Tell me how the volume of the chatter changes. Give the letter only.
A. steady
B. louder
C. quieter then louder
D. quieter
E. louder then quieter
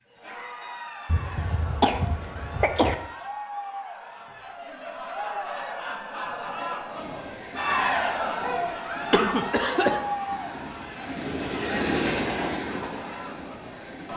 E.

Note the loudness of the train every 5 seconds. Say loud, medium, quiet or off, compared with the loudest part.
off, medium, loud.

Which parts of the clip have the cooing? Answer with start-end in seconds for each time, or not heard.
not heard.